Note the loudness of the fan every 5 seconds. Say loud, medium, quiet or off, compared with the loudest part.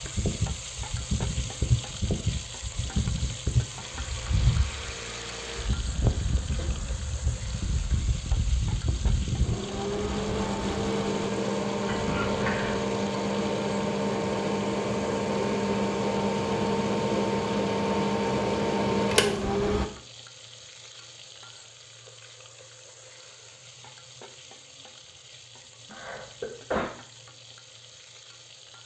medium, medium, loud, loud, off, off.